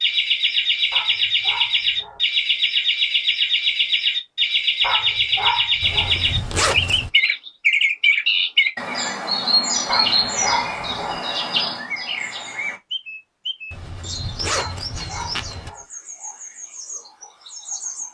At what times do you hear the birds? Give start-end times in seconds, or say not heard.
0.0-18.0.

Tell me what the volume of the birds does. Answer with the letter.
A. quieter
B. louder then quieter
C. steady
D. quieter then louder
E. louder
A.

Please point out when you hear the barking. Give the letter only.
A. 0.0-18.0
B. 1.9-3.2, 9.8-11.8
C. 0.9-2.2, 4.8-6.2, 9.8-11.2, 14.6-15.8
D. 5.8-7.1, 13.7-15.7
C.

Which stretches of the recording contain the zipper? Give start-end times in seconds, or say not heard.
5.8-7.1, 13.7-15.7.